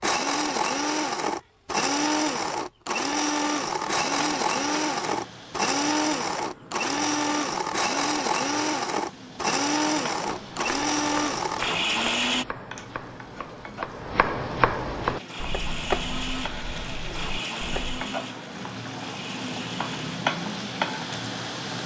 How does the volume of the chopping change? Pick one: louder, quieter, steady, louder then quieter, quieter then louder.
louder then quieter.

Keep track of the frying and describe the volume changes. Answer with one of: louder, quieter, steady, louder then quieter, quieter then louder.
louder.